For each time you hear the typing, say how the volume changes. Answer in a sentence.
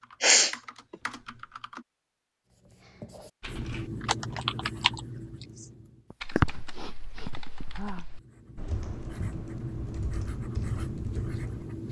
The typing can be heard briefly from 0.0 to 1.9 s; and from 3.4 to 11.7 s, getting quieter then louder.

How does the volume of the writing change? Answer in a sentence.
The volume of the writing goes down, then up.